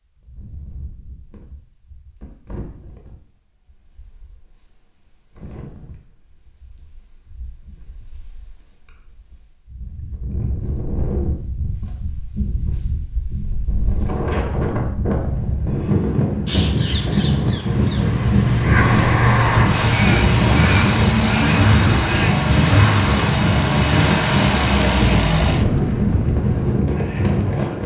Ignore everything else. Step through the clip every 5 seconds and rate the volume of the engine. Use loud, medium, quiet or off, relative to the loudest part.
off, off, off, loud, loud, loud.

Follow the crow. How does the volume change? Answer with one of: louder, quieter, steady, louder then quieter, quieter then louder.
louder.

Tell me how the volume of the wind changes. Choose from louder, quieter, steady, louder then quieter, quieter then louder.
louder.